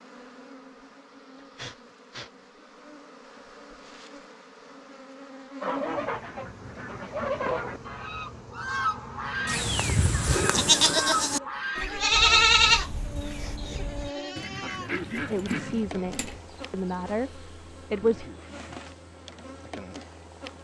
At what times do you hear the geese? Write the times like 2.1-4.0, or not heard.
5.6-15.9.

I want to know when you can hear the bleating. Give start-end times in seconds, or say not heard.
9.4-17.0.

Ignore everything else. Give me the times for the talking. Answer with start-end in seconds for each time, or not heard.
15.1-18.3.